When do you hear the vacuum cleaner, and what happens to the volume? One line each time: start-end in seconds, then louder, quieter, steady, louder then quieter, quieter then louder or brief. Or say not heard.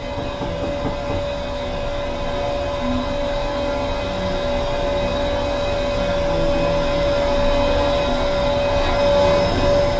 0.0-9.9 louder.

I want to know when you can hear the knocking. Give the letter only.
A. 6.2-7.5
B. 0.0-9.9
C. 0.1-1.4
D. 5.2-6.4
C.